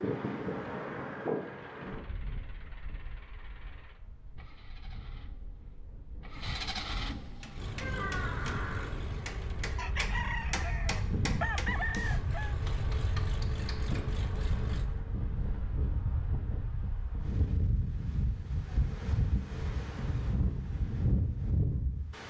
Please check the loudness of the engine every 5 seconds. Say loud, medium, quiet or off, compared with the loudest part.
quiet, loud, loud, off, off.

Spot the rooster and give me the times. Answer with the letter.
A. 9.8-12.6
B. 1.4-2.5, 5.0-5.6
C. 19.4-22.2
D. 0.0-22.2
A.